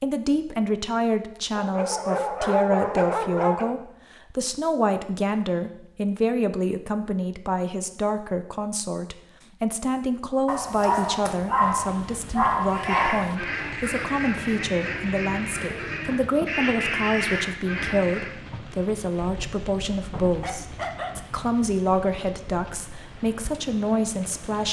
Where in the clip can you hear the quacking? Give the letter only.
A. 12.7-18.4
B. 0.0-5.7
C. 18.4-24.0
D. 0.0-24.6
A.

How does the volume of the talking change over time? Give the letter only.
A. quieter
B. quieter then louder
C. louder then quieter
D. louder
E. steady
E.